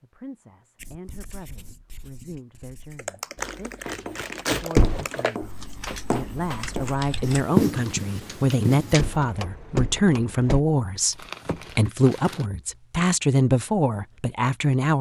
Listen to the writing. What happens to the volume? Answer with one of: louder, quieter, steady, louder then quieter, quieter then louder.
louder.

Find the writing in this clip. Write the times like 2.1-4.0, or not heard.
0.8-9.1.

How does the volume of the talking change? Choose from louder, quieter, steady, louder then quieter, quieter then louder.
louder.